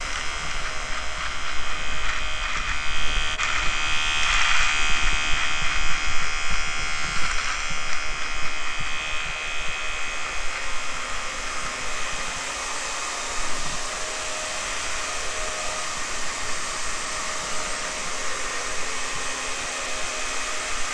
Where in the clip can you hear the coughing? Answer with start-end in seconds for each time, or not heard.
not heard.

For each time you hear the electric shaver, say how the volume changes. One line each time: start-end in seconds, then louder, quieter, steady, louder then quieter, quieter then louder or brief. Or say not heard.
0.0-20.8 quieter.